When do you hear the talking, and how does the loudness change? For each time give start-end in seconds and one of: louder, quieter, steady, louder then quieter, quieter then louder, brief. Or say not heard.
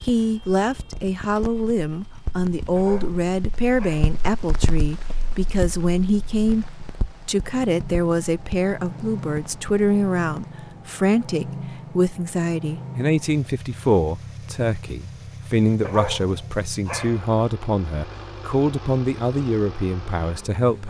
0.0-20.8 steady.